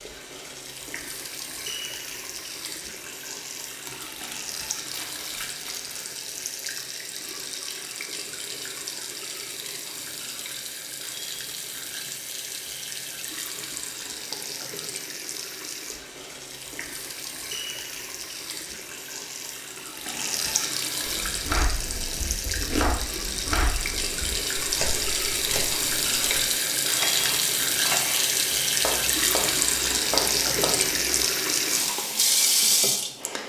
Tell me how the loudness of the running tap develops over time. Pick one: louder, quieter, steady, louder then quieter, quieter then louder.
louder.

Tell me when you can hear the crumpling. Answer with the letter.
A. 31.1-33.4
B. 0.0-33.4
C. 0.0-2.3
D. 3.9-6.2
D.